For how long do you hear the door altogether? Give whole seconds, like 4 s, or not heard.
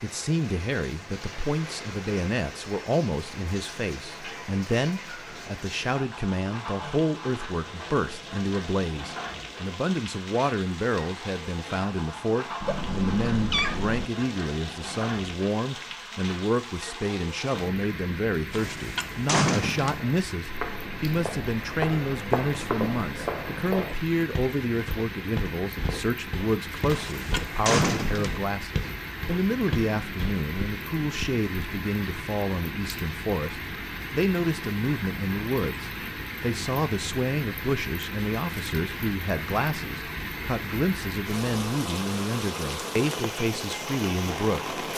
3 s.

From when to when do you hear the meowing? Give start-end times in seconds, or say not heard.
12.6-14.1.